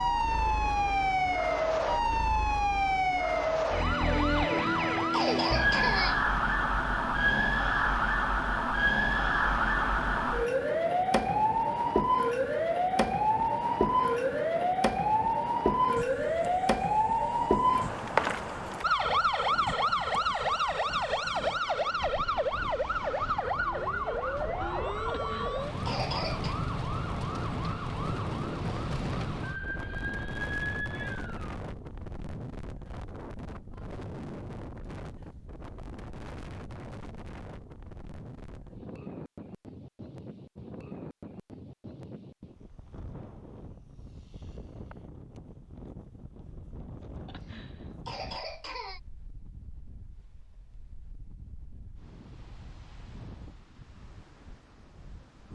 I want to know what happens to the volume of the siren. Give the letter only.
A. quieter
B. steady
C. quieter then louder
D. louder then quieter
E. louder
A.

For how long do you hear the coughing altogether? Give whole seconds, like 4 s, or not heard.
5 s.